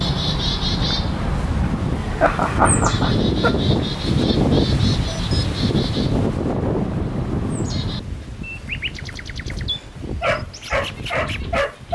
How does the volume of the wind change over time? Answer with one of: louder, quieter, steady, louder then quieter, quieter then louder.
louder then quieter.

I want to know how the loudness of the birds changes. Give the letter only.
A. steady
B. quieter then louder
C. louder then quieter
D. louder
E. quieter
E.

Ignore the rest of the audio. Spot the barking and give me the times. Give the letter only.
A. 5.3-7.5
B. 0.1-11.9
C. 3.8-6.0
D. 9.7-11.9
D.